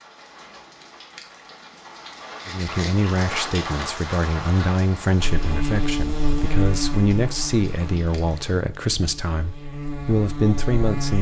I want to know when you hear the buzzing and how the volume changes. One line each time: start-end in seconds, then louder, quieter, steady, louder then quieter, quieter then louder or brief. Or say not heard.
5.2-11.1 quieter then louder.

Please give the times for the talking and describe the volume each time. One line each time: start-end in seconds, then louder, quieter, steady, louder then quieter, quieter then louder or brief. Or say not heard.
2.5-11.1 steady.